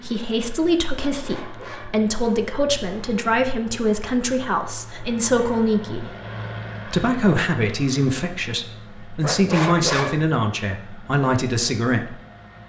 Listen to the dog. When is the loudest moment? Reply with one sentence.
The loudest moment of the dog is at 10 seconds.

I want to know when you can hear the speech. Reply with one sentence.
The speech can be heard from 0.0 to 6.1 s and from 6.8 to 12.2 s.